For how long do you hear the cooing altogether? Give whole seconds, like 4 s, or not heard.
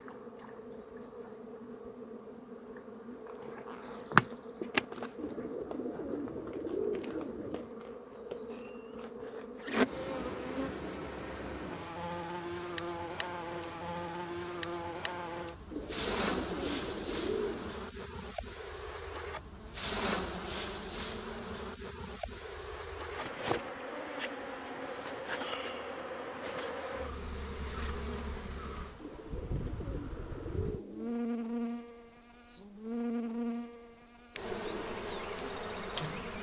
7 s.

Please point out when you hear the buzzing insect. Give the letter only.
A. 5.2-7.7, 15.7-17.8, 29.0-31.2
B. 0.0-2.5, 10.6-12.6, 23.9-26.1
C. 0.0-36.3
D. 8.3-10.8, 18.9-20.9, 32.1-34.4
C.